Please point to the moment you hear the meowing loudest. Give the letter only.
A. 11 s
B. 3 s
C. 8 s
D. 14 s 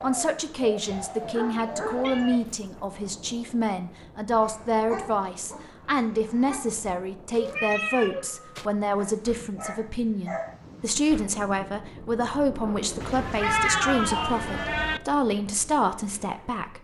D.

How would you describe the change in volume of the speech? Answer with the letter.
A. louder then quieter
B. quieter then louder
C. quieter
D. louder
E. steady
E.